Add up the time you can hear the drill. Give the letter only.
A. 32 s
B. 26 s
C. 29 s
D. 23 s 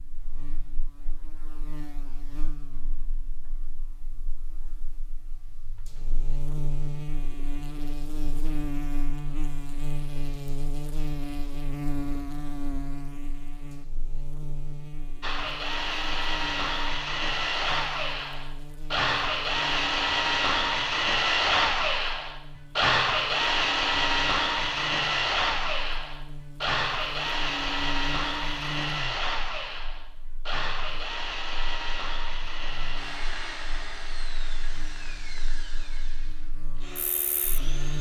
D.